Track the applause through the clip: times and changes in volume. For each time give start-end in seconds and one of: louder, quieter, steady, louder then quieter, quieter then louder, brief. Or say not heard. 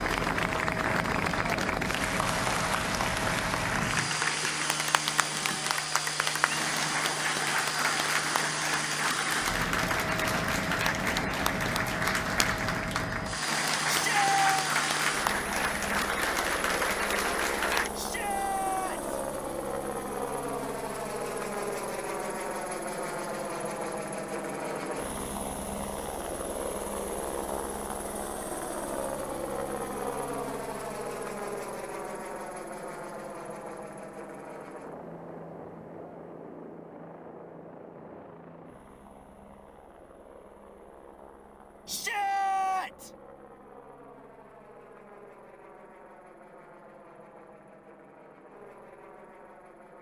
0.0-17.9 steady.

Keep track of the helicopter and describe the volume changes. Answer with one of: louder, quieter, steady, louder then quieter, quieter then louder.
quieter.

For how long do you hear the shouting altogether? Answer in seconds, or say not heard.
3 s.